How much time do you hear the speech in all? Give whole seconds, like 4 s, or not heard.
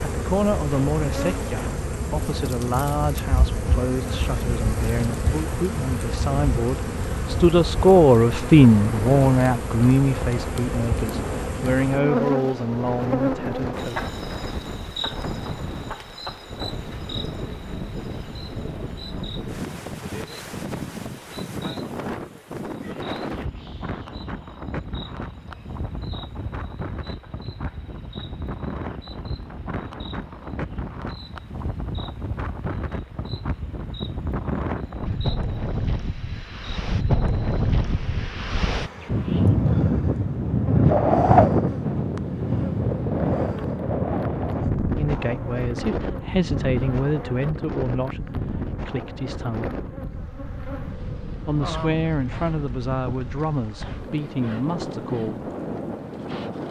22 s.